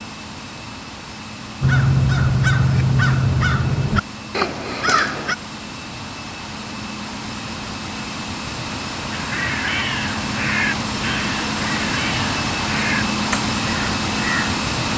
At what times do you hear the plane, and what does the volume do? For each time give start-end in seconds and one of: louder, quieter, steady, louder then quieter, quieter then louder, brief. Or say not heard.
0.0-14.9 louder.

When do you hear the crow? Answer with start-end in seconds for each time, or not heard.
1.6-5.3, 9.1-14.6.